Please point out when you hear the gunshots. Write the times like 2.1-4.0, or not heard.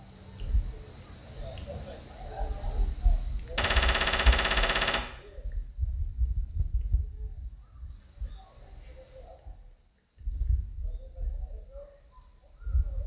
3.5-5.0.